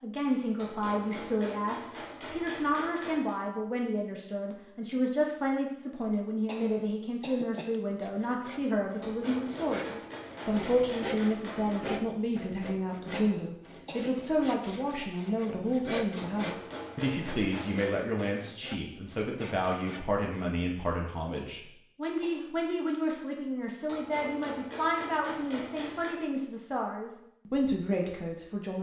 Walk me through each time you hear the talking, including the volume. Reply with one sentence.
The talking can be heard from 0.0 to 28.7 s, at a steady volume.